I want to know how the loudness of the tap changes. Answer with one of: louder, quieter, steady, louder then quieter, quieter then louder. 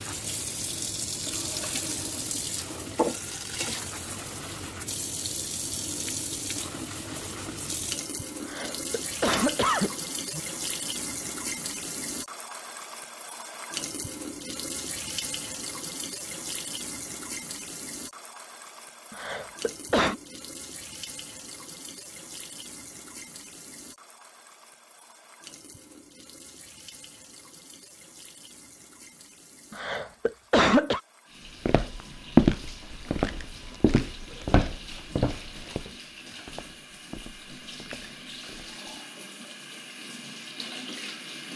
quieter then louder.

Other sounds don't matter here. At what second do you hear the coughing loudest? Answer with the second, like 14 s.
31 s.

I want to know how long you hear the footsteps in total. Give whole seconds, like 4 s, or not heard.
7 s.